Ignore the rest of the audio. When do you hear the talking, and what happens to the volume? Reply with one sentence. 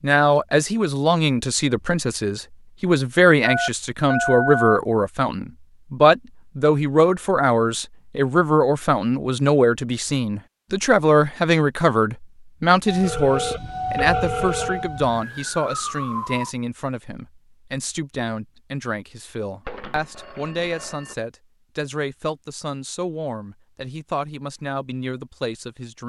You can hear the talking from 0.0 to 26.0 s, getting quieter.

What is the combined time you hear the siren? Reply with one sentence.
The siren can be heard for 4 seconds in total.